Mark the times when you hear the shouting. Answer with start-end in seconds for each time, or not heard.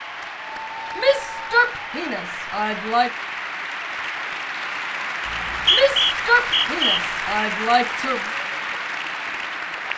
0.9-3.1, 5.7-8.2.